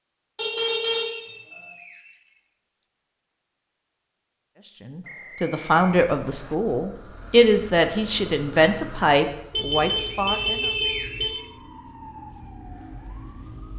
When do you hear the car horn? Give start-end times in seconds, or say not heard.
0.3-1.7, 9.5-11.3.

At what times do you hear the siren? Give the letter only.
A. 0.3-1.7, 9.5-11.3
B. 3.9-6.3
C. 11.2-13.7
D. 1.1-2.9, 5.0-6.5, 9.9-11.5
C.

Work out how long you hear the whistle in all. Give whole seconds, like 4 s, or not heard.
5 s.